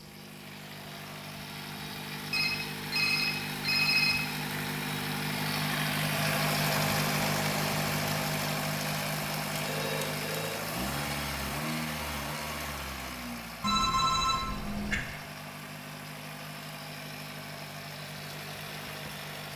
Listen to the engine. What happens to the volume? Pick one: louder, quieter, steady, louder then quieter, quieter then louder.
louder then quieter.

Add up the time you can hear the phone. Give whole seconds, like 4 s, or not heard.
4 s.